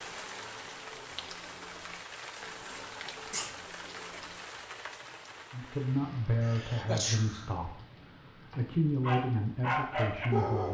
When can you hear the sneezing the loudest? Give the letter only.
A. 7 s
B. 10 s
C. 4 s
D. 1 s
A.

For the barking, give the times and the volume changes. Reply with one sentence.
You can hear the barking from 0.0 to 5.2 s, at a steady volume; and briefly from 8.5 to 10.6 s.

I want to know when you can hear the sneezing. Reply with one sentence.
The sneezing can be heard from 2.6 to 3.5 s and from 6.4 to 7.5 s.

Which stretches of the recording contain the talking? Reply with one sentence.
The talking can be heard from 5.5 to 10.6 s.